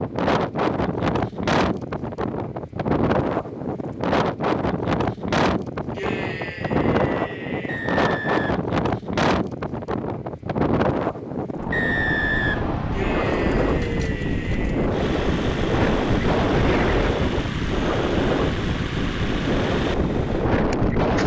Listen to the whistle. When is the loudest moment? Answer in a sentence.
The loudest moment of the whistle is at 12 seconds.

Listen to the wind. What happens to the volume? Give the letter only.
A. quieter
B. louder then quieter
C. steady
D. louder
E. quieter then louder
C.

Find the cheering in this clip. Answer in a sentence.
The cheering can be heard from 5.9 to 7.8 s and from 12.9 to 14.9 s.